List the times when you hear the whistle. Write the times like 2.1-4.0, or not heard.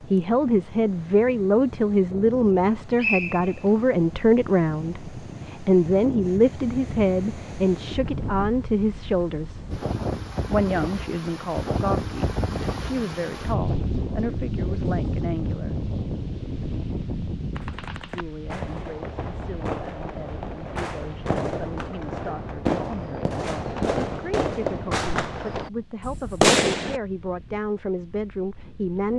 3.0-3.7.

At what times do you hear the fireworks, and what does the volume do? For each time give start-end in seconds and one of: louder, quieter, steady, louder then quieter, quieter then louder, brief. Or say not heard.
17.6-27.0 louder.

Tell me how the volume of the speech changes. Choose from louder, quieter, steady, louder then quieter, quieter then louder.
quieter then louder.